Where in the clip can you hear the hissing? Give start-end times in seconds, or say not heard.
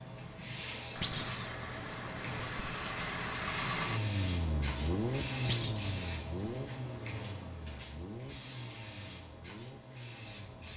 0.0-10.7.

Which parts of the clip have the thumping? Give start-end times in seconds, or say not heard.
1.0-1.5, 5.5-6.0.